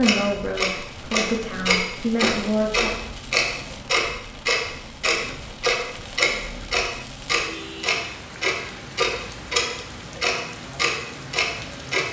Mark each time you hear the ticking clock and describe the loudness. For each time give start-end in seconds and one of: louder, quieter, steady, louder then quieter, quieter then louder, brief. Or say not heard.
0.0-12.0 steady.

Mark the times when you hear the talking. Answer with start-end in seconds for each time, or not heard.
0.0-2.9.